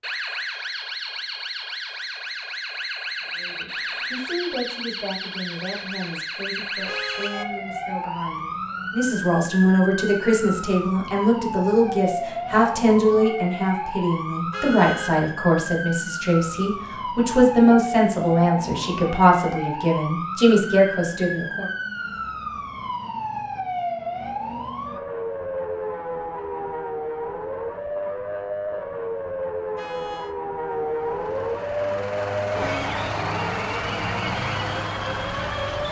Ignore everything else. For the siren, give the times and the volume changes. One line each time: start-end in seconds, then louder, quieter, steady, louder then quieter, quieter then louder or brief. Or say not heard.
0.0-35.8 steady.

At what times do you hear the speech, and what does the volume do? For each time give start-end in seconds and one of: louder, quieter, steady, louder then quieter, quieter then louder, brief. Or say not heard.
3.4-21.7 louder.